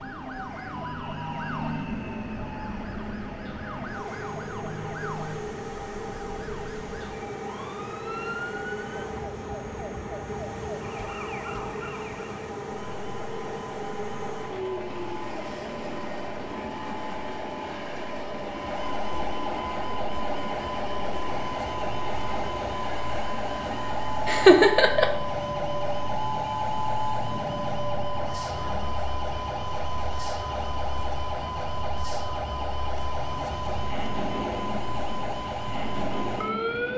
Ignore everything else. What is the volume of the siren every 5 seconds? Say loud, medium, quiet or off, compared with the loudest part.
medium, medium, medium, medium, loud, loud, loud, loud.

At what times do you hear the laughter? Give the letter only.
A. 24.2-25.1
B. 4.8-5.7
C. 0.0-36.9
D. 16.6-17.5
A.